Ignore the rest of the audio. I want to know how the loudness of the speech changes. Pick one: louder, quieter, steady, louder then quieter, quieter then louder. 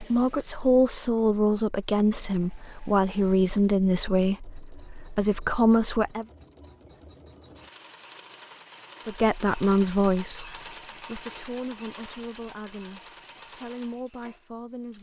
quieter.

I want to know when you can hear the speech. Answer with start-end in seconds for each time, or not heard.
0.0-6.2, 9.1-14.9.